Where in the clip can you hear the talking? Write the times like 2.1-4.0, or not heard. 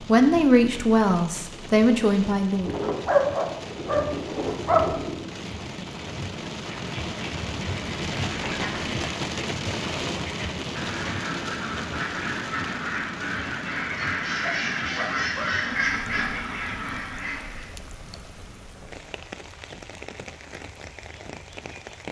0.0-2.9.